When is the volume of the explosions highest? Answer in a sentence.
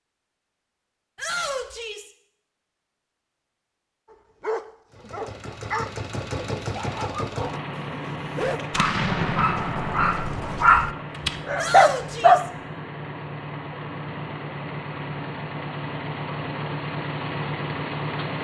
The volume of the explosions peaks at 9 seconds.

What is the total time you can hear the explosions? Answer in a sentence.
The explosions can be heard for 3 seconds in total.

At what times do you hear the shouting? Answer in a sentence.
You can hear the shouting from 1.1 to 2.1 s and from 11.6 to 12.5 s.